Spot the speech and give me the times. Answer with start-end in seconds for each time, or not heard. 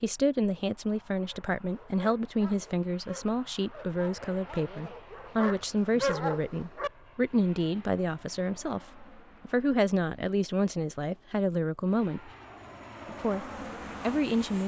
0.0-12.3, 13.1-14.6.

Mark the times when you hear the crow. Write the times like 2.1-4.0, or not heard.
not heard.